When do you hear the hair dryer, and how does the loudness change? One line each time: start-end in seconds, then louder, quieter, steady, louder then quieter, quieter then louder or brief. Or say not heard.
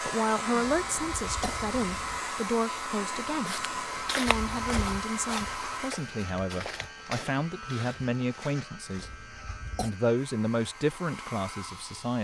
0.0-6.0 steady
10.2-12.1 brief.